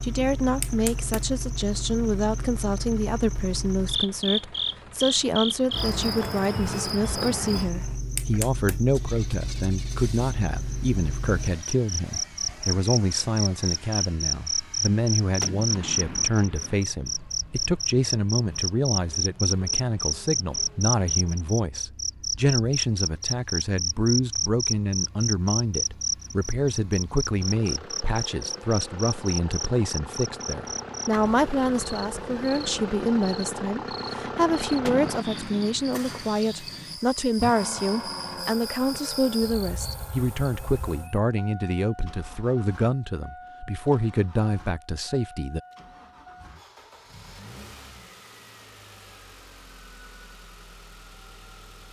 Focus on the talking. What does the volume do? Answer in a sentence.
The volume of the talking stays about the same.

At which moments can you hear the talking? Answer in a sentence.
You can hear the talking from 0.0 to 45.6 s.